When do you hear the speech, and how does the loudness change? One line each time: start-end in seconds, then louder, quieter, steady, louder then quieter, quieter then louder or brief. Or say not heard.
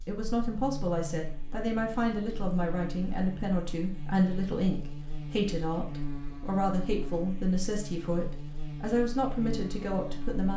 0.1-10.5 steady.